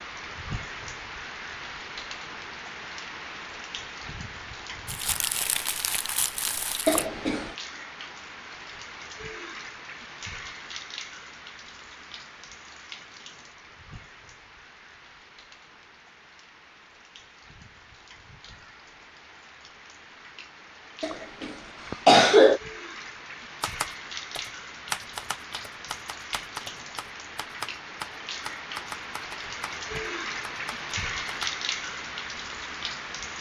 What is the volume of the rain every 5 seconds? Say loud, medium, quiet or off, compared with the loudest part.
medium, medium, medium, quiet, medium, medium, loud.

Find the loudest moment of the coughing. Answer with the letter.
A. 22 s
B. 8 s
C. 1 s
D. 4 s
A.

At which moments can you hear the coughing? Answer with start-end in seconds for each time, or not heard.
6.8-7.5, 21.0-22.6.